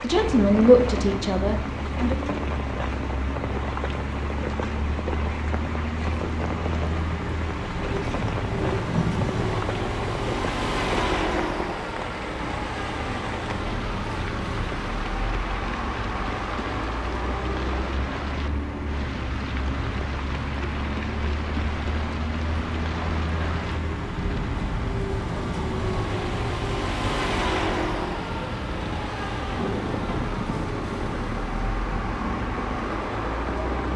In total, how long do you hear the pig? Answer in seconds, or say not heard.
2 s.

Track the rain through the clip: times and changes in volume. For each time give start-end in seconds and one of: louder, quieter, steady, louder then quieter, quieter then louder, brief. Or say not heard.
0.0-33.9 steady.